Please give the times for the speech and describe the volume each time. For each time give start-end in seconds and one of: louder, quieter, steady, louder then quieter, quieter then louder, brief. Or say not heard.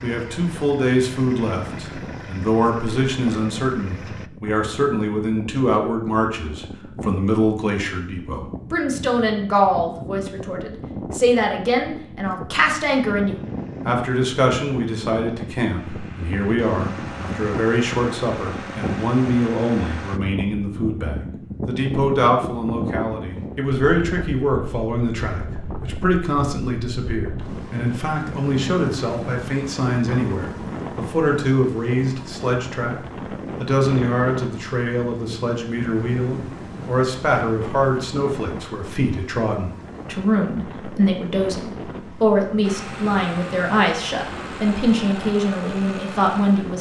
0.0-46.7 steady.